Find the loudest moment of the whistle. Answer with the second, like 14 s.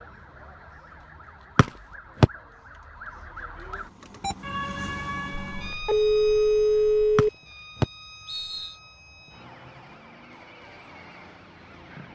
2 s.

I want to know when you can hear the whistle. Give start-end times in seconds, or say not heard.
1.6-2.3, 7.2-8.8.